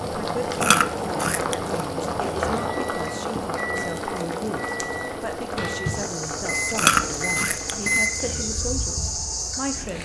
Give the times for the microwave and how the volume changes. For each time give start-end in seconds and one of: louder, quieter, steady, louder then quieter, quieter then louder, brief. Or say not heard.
0.0-9.9 louder.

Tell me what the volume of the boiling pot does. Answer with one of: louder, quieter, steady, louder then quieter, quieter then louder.
quieter.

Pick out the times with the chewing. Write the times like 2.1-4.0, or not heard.
0.5-2.3, 6.7-8.3.